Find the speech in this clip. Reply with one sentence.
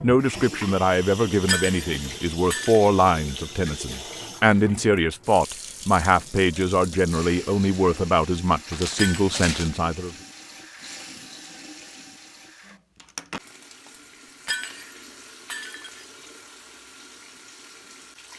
The speech can be heard from 0.0 to 10.2 s.